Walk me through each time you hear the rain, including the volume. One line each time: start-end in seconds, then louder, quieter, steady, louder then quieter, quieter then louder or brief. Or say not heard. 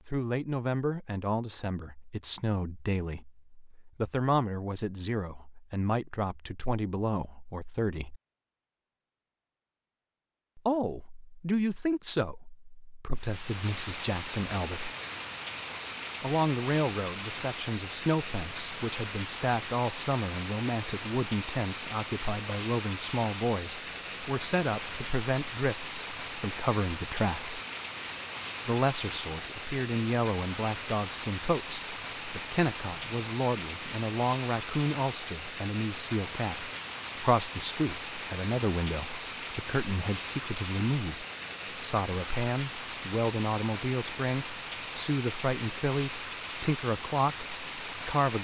13.2-48.3 steady.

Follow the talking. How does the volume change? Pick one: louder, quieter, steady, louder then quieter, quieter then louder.
steady.